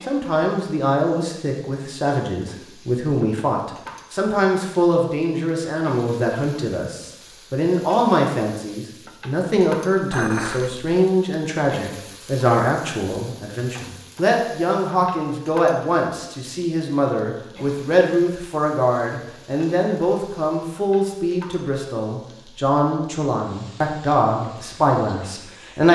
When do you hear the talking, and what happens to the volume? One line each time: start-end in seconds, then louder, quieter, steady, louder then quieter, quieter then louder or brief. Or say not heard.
0.1-25.8 steady.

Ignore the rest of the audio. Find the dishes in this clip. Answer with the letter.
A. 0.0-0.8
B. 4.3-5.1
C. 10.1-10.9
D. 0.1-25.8
C.